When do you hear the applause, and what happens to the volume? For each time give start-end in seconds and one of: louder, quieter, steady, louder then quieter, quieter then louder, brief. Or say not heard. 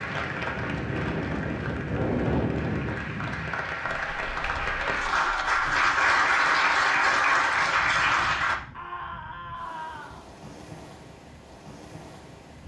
0.0-8.6 louder.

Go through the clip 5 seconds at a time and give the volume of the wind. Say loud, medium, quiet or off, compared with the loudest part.
loud, quiet, quiet.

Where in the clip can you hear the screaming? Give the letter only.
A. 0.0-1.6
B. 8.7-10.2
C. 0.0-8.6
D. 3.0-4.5
B.